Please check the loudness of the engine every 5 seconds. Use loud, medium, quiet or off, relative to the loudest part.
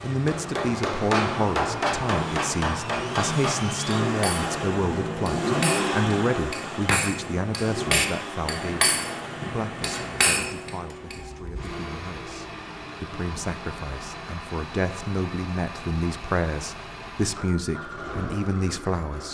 loud, loud, medium, medium.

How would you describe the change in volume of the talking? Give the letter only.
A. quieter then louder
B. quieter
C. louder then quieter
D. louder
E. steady
A.